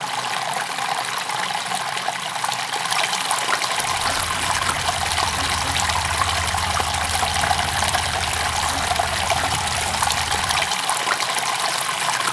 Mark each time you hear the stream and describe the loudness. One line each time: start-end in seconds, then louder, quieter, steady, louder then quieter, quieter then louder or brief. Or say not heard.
0.0-12.2 steady.